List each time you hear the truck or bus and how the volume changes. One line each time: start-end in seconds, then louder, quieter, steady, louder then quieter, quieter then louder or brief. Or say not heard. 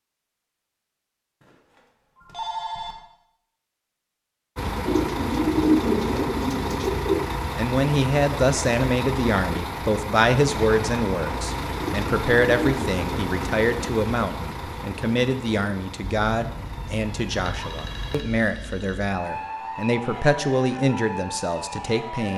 4.5-18.2 quieter.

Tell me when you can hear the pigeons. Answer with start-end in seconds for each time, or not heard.
4.8-7.2, 11.8-13.7.